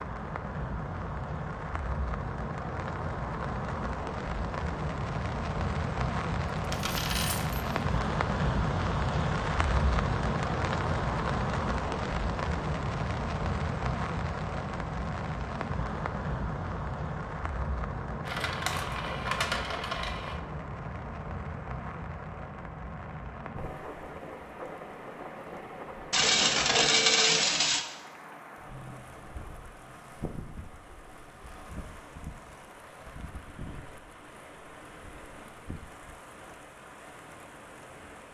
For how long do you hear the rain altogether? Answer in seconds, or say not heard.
38 s.